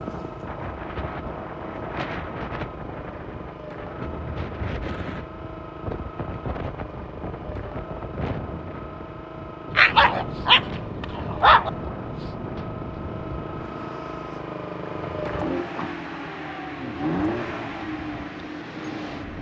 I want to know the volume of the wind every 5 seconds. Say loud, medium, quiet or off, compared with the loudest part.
loud, loud, loud, medium.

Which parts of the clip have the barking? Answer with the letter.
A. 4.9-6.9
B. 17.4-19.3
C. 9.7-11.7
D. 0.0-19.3
C.